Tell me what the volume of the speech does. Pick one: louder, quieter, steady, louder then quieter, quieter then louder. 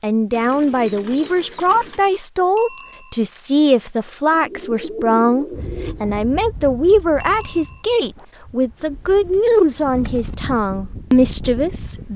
steady.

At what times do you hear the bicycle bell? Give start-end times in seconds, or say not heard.
2.5-3.2, 7.2-7.8.